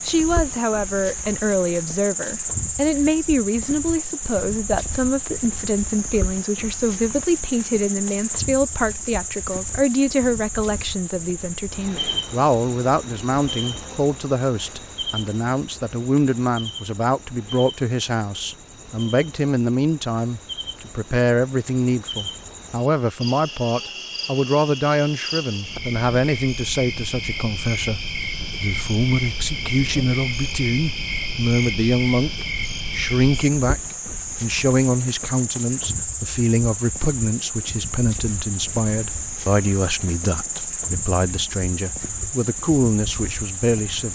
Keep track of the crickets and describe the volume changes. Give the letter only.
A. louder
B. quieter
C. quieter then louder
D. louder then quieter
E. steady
C.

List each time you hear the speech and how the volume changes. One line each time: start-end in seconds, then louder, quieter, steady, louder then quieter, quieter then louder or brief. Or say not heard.
0.1-44.1 steady.